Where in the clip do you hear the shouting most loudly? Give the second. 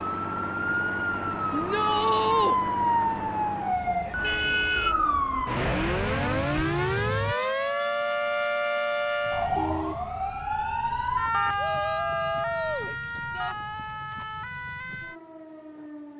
2 s.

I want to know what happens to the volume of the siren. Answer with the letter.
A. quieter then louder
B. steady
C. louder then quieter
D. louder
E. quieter
E.